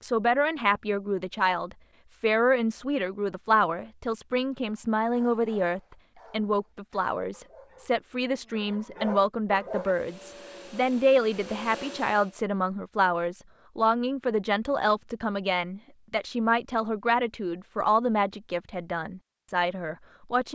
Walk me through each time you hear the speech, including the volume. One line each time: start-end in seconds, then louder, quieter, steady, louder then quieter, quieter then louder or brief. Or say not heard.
0.0-20.5 steady.